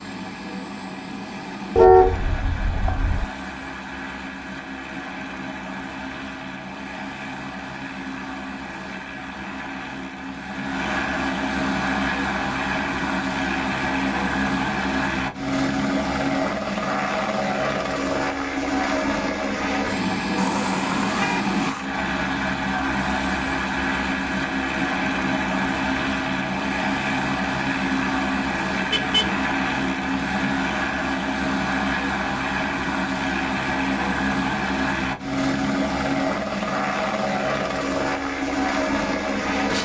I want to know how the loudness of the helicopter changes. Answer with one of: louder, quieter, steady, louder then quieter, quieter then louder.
louder.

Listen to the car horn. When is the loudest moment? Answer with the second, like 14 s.
2 s.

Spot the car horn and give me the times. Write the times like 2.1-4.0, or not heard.
1.8-3.2, 20.4-21.9, 28.9-29.4.